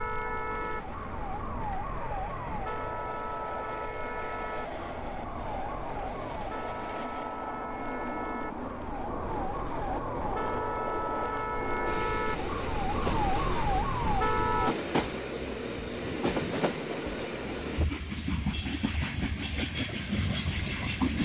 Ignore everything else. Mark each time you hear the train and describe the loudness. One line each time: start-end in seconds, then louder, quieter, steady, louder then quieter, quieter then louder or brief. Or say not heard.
0.0-21.2 louder.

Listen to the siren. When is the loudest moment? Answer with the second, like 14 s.
14 s.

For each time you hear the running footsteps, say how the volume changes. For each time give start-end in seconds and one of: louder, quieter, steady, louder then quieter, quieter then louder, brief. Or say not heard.
not heard.